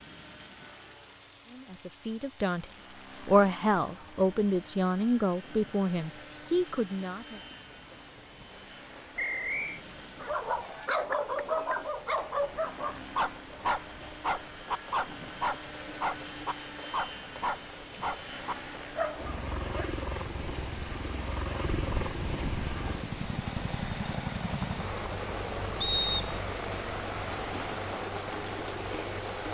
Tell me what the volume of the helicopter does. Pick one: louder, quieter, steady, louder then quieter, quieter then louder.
louder.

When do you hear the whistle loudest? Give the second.
26 s.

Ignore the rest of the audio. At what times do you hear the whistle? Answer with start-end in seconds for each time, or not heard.
9.2-9.8, 25.8-26.4.